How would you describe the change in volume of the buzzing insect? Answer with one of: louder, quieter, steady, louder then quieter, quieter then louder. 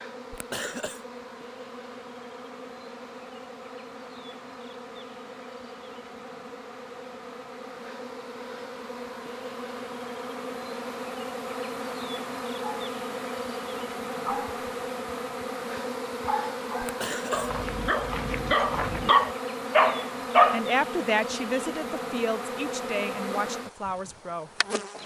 louder.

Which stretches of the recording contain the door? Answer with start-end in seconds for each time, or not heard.
not heard.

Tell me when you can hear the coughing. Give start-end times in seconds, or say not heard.
0.3-1.1, 16.8-17.6.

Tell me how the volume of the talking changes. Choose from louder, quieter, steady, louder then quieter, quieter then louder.
quieter.